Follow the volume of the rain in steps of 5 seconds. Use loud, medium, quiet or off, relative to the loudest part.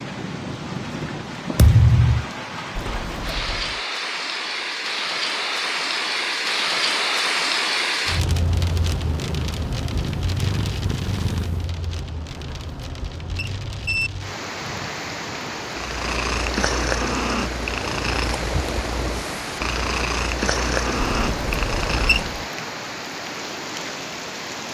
medium, loud, medium, medium, medium.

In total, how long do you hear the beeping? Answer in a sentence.
You can hear the beeping for 4 seconds altogether.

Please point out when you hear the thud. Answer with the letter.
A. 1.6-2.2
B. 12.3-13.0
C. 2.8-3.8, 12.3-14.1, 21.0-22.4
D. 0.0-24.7
A.